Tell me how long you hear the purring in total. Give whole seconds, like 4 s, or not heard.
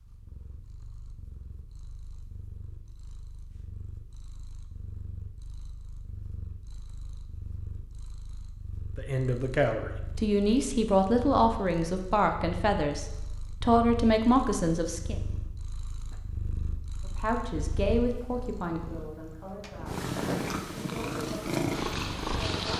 23 s.